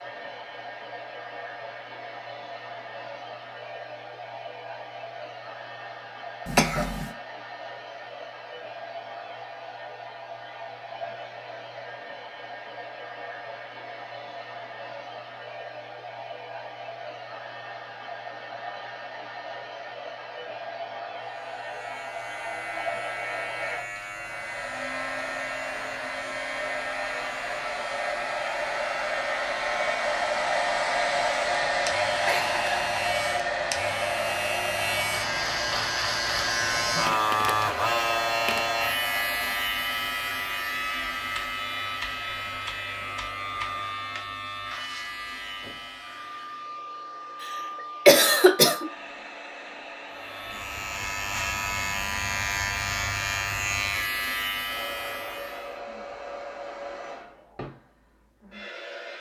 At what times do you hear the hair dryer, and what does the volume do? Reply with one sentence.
You can hear the hair dryer from 0.0 to 59.1 s, getting louder then quieter.